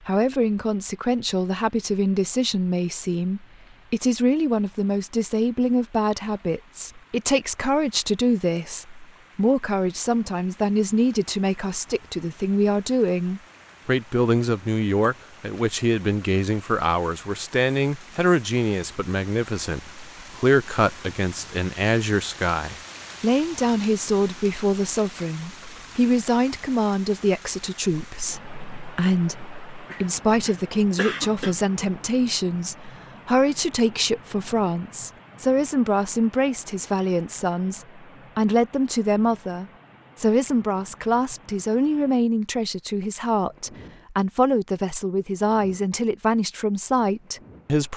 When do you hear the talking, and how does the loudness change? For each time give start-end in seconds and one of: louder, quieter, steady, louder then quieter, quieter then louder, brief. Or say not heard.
0.1-47.9 steady.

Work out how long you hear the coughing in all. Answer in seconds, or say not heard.
2 s.